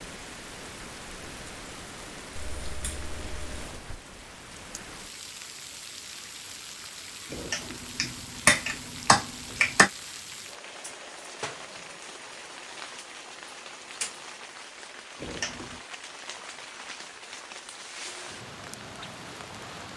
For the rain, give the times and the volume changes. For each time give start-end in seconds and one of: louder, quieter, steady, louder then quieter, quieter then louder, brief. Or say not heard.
0.0-19.9 steady.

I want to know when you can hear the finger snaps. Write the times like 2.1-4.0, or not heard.
2.4-3.7, 7.3-9.9, 15.2-15.8.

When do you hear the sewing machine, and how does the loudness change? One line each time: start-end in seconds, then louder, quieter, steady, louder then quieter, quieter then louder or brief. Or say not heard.
not heard.